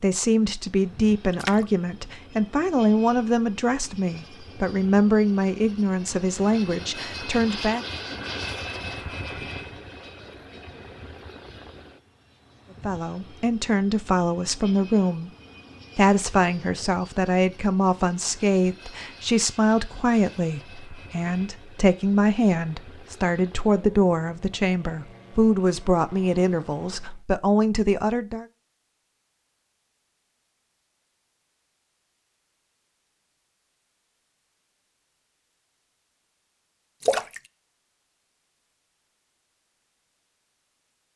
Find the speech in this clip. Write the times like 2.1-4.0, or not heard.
0.0-7.8, 12.8-15.3, 15.9-28.4.